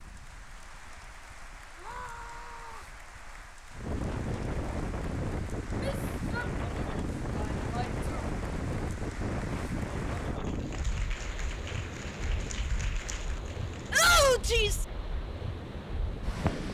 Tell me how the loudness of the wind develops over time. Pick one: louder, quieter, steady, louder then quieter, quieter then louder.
louder then quieter.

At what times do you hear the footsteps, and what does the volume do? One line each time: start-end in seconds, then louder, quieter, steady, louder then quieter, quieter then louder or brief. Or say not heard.
not heard.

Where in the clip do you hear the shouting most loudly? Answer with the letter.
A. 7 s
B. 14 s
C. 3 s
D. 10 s
B.